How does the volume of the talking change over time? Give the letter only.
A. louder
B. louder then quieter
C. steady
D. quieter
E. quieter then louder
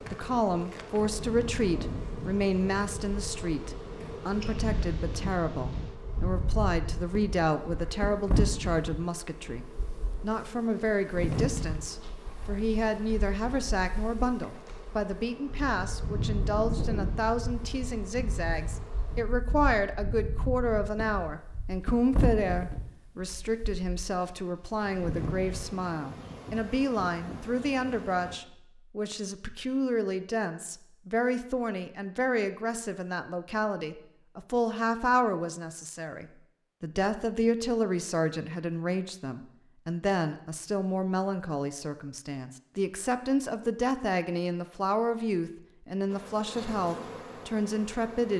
C.